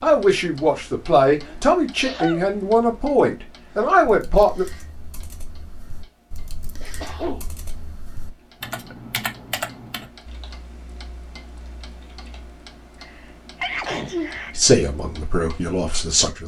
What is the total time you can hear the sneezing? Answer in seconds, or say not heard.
3 s.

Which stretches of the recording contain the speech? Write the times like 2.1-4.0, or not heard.
0.0-4.7, 14.5-16.4.